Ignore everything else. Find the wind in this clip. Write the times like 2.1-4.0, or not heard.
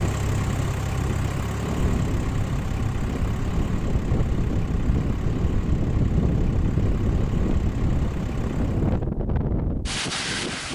0.0-10.6.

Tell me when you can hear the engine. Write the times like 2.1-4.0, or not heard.
0.0-9.1.